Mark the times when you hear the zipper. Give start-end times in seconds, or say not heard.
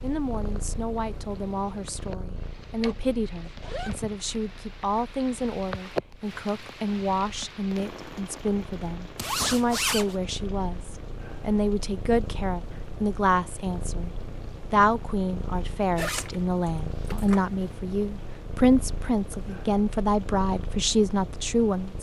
2.8-4.0, 9.2-10.2, 15.9-17.4.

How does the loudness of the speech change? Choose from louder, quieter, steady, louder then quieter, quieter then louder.
louder.